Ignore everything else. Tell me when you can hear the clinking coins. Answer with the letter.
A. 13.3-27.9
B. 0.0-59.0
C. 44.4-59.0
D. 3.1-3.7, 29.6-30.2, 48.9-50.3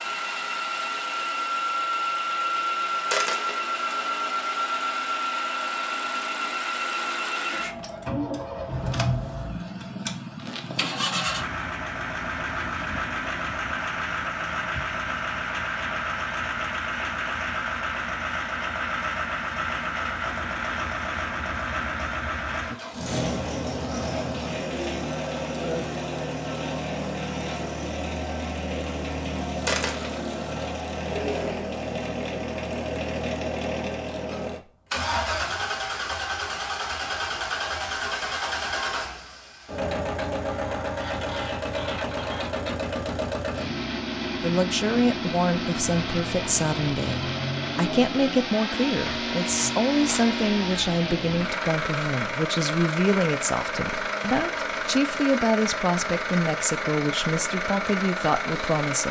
D.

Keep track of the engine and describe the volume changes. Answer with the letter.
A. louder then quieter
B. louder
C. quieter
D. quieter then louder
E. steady
E.